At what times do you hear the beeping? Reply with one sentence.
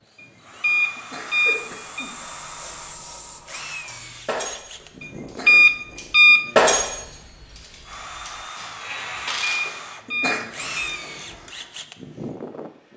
You can hear the beeping from 0.6 to 2.1 s, from 5.5 to 6.4 s and from 9.4 to 11.0 s.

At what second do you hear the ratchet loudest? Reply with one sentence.
The loudest moment of the ratchet is at 7 seconds.